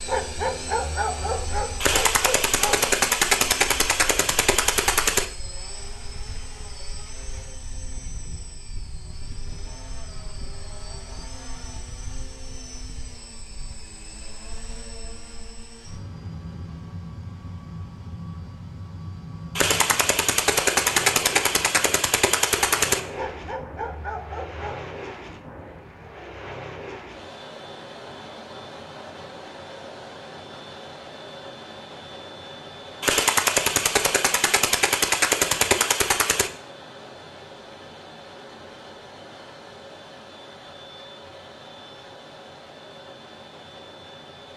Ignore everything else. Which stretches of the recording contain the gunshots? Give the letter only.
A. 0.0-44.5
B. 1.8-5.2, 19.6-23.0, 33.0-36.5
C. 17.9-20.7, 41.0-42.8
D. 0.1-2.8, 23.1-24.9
B.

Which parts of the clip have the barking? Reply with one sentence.
The barking can be heard from 0.1 to 2.8 s and from 23.1 to 24.9 s.